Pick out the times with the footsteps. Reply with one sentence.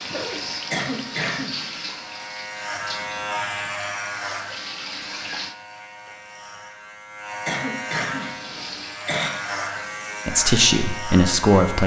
You can't hear the footsteps here.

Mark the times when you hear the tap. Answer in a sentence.
You can hear the tap from 0.0 to 5.5 s and from 8.1 to 10.3 s.